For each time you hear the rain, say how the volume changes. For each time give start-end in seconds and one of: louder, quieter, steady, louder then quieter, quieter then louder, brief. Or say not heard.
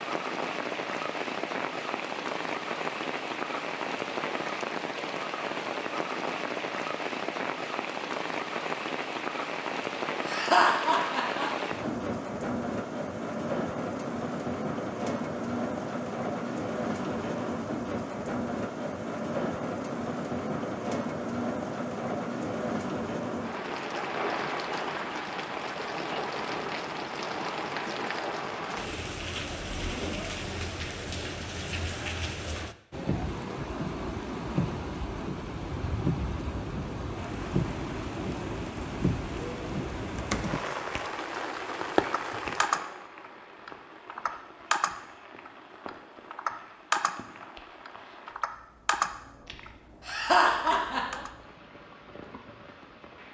0.0-53.2 quieter.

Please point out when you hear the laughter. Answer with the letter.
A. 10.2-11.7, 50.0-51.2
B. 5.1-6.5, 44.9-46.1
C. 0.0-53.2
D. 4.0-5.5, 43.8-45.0
A.